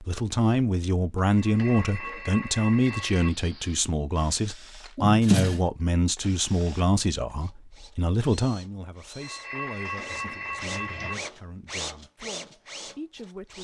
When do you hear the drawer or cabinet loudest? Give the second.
5 s.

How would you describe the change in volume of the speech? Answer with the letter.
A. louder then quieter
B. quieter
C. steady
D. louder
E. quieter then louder
B.